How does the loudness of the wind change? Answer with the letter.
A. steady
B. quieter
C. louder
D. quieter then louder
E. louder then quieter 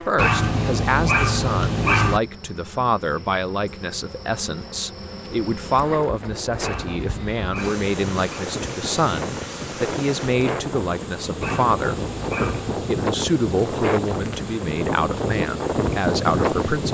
C.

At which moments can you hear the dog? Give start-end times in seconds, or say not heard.
0.1-2.2, 6.6-8.4, 11.4-12.8.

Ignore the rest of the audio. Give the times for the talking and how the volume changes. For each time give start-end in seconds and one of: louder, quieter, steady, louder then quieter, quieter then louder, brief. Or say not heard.
0.0-16.8 steady.